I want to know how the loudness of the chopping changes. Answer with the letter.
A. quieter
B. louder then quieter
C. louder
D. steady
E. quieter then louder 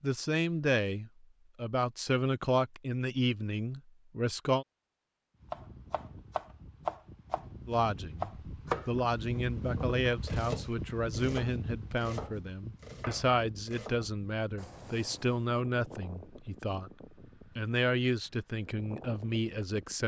A.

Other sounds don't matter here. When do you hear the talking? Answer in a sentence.
The talking can be heard from 0.0 to 4.7 s, from 7.7 to 16.9 s and from 17.6 to 20.0 s.